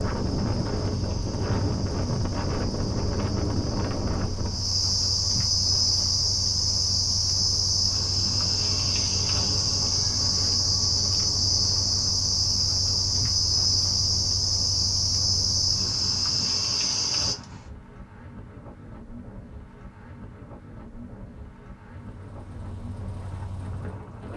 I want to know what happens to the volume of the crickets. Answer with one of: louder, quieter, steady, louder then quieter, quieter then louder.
louder.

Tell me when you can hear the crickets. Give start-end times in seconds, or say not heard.
0.0-17.4.